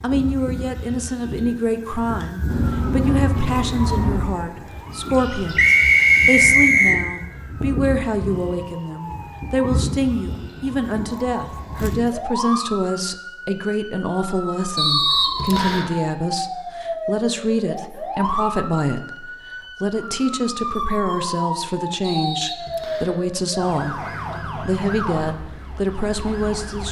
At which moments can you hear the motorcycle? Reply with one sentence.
The motorcycle can be heard from 2.5 to 4.2 s.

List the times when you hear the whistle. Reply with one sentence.
You can hear the whistle from 5.5 to 7.0 s, from 14.8 to 15.9 s and from 22.0 to 23.1 s.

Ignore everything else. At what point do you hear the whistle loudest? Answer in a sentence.
The loudest moment of the whistle is at 6 seconds.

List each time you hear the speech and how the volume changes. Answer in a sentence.
You can hear the speech from 0.0 to 26.8 s, at a steady volume.